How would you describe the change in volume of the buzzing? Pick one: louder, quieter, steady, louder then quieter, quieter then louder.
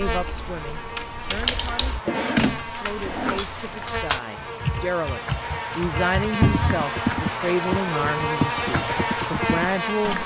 louder.